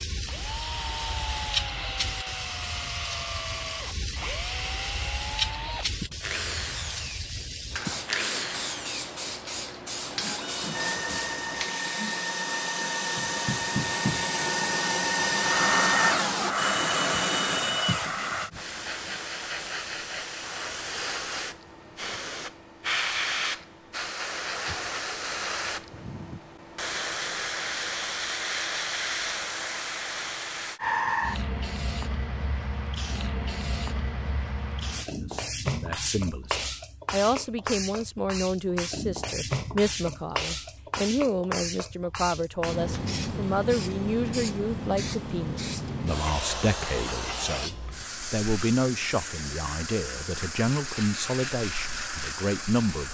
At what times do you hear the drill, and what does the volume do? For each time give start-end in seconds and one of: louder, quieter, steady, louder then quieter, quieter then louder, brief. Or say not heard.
0.0-19.1 louder.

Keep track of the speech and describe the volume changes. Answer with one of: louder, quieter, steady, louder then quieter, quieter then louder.
steady.